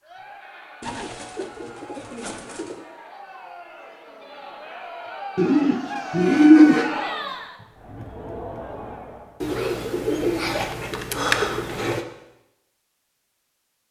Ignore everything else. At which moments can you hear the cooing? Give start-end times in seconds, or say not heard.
0.8-2.9, 5.3-6.9, 9.4-12.1.